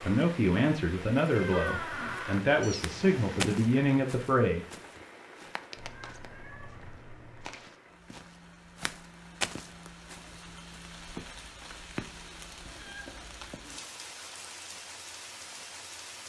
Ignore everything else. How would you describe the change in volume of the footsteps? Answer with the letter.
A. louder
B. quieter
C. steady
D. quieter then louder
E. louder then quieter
A.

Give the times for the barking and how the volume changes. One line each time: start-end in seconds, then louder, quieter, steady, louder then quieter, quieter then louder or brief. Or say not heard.
not heard.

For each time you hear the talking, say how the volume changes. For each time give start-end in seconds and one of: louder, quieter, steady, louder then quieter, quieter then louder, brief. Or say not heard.
0.0-4.7 steady.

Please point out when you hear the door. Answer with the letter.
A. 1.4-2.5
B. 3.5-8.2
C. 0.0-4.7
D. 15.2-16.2
A.